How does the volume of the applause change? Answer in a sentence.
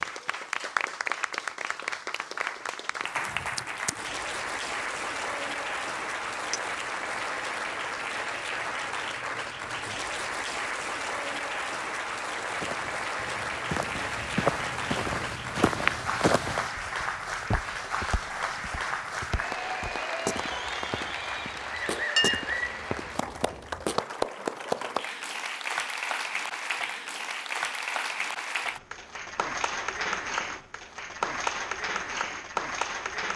The volume of the applause stays about the same.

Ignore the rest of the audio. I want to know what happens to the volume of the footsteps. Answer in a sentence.
The volume of the footsteps goes up, then down.